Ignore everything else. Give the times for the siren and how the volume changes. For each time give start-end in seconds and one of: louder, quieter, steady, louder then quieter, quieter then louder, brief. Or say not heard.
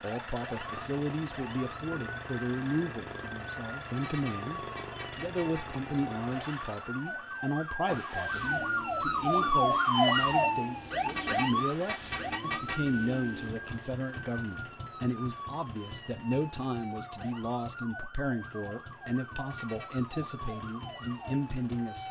0.0-22.0 louder then quieter.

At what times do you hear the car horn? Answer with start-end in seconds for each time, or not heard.
4.0-5.8, 11.1-12.9, 19.5-20.1.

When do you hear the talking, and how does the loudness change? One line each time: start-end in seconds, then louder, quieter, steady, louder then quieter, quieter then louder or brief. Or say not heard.
0.0-22.0 steady.